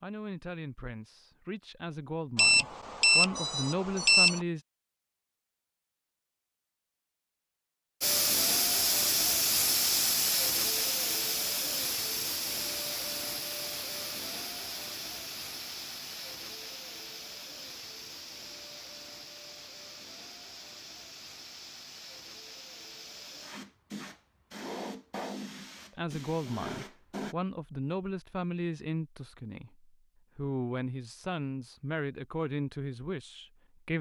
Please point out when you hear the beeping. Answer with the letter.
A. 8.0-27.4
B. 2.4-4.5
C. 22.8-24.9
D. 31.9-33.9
B.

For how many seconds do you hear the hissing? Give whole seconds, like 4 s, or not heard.
19 s.